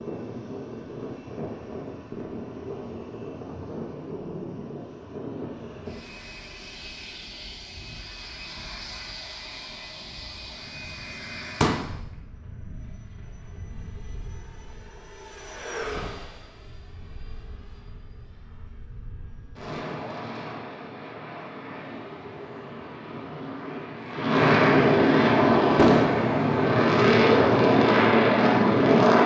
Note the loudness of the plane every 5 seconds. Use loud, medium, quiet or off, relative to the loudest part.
quiet, quiet, quiet, quiet, medium, loud.